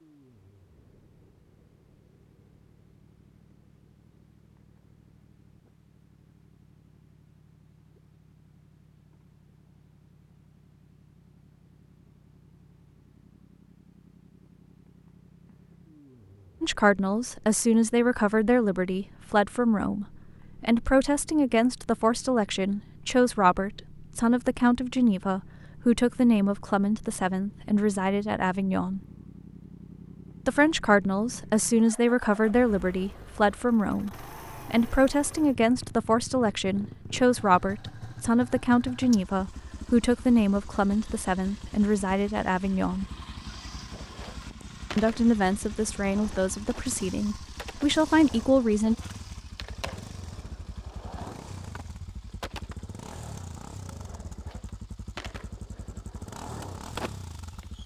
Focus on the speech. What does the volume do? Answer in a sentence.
The loudness of the speech stays about the same.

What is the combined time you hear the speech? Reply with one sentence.
The speech can be heard for 29 seconds in total.